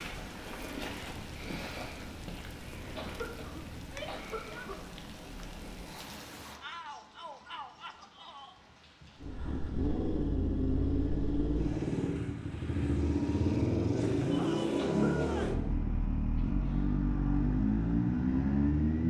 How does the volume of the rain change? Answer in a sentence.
The volume of the rain goes down.